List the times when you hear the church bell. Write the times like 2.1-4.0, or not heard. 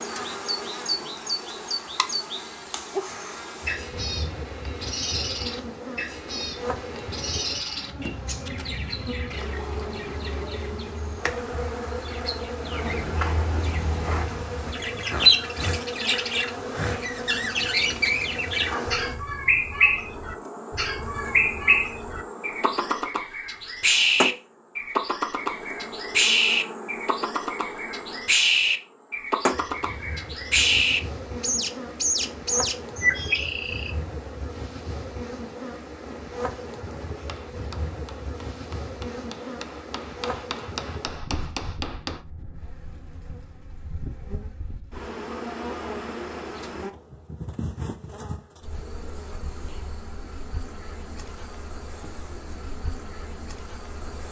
not heard.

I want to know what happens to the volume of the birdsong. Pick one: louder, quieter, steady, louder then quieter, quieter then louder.
louder.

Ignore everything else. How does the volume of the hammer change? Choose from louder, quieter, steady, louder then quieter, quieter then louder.
louder.